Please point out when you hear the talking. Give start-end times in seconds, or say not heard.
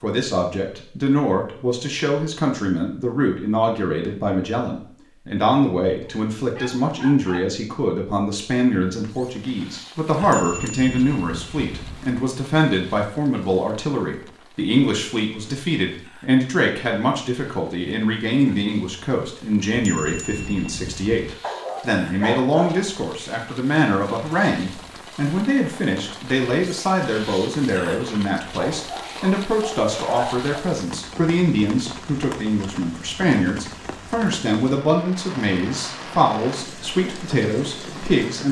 0.0-38.4.